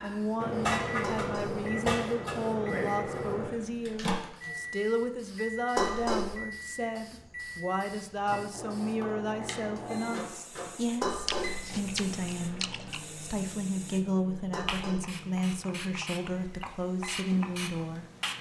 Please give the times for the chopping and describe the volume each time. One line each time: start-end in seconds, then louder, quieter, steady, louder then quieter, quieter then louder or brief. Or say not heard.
not heard.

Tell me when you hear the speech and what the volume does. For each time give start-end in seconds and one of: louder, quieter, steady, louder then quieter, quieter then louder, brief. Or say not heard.
0.0-18.1 steady.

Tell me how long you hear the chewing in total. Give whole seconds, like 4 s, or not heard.
2 s.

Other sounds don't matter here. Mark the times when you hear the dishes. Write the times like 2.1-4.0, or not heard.
1.0-1.6, 5.8-6.3, 11.0-11.6, 14.5-15.2.